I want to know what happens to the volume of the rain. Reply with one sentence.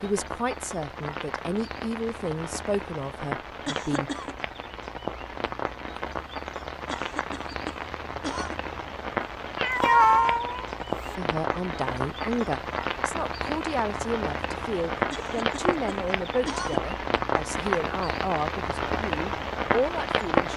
The loudness of the rain goes up.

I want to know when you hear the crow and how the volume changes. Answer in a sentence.
The crow can't be heard in this clip.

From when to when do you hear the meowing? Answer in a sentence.
The meowing can be heard from 9.6 to 11.2 s.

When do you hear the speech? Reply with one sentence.
You can hear the speech from 0.0 to 4.1 s and from 11.2 to 20.5 s.